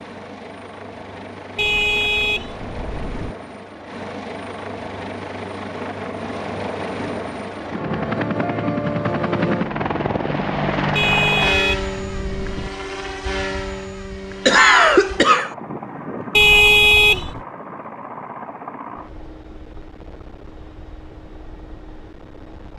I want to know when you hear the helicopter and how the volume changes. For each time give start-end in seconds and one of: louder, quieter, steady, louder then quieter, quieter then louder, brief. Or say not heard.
0.0-22.7 louder then quieter.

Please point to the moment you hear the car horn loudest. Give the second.
17 s.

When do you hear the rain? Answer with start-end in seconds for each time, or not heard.
not heard.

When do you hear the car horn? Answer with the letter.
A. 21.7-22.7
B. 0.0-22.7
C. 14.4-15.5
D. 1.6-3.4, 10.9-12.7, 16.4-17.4
D.